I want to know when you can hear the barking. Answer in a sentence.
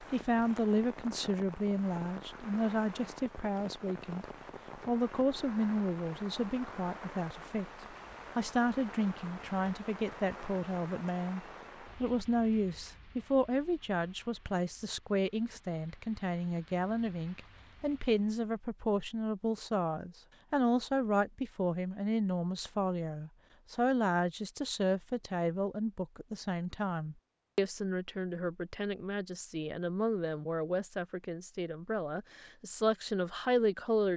You can't hear the barking here.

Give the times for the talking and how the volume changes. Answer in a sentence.
You can hear the talking from 0.0 to 34.1 s, at a steady volume.